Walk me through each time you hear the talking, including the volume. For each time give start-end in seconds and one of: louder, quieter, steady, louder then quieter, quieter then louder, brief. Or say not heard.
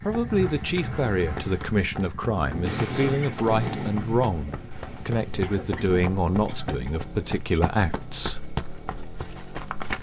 0.0-8.4 steady.